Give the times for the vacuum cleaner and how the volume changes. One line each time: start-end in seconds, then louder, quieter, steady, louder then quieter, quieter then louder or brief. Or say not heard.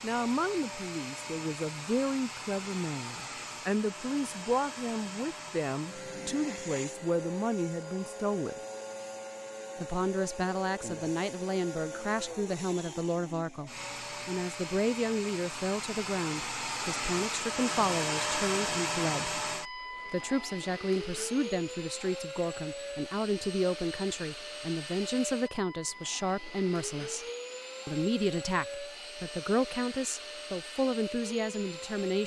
0.0-32.2 louder then quieter.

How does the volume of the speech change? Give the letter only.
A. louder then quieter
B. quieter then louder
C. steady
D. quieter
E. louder
C.